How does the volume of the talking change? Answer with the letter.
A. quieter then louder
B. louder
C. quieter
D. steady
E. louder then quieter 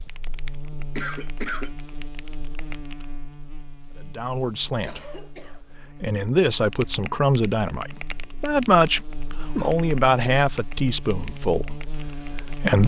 E.